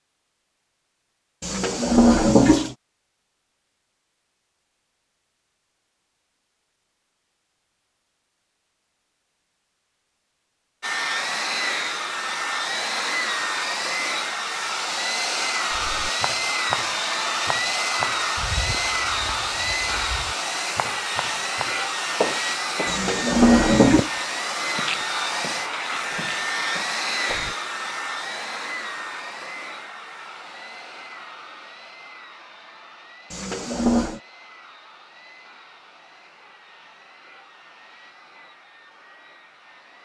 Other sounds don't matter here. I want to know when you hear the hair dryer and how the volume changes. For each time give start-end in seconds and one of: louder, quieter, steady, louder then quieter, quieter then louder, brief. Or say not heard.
10.8-40.0 quieter.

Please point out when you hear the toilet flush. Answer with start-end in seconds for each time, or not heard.
1.4-2.8, 22.9-24.1, 33.3-34.2.